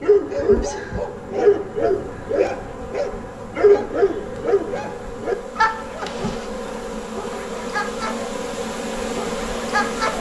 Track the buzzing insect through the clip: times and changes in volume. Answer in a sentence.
The buzzing insect can be heard from 0.0 to 10.1 s, getting louder.